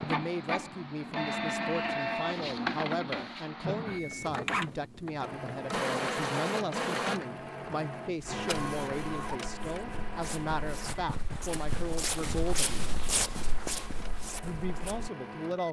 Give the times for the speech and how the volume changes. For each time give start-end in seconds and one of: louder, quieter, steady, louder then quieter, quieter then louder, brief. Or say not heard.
0.0-12.9 steady
14.4-15.6 brief.